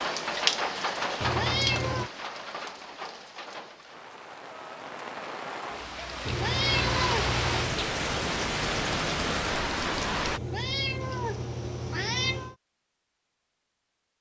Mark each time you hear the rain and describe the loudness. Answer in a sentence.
The rain can be heard from 0.0 to 10.4 s, getting quieter then louder.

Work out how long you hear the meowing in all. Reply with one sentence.
You can hear the meowing for 5 seconds altogether.